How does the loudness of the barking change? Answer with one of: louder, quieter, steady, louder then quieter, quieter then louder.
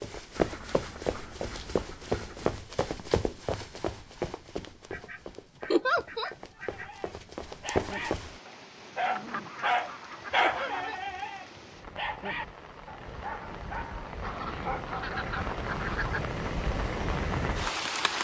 louder then quieter.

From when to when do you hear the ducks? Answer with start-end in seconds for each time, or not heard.
0.3-2.6, 4.9-7.2, 9.2-10.9, 14.2-16.2.